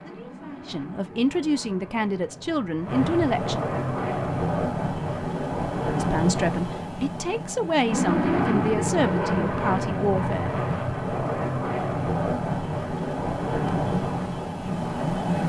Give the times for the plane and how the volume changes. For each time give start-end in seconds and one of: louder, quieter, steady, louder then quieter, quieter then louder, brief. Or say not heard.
0.0-15.4 louder.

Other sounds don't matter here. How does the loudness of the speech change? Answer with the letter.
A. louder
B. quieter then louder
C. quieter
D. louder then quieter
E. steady
E.